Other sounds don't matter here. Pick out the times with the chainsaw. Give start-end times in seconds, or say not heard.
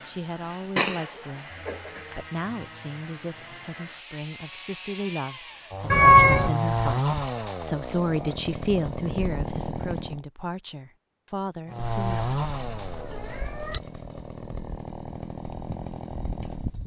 0.0-10.2, 11.7-16.8.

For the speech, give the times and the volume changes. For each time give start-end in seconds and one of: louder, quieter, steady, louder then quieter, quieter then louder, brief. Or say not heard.
0.0-1.5 brief
2.1-12.3 louder then quieter.